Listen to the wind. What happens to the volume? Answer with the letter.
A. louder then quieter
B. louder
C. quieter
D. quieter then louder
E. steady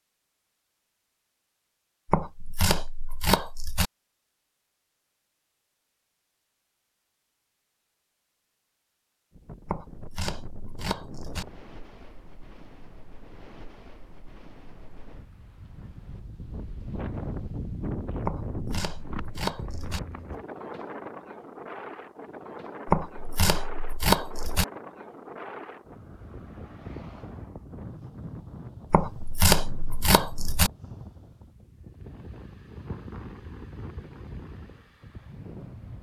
A.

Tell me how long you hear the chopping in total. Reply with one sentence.
You can hear the chopping for 9 seconds altogether.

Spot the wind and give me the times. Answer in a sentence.
The wind can be heard from 9.3 to 35.9 s.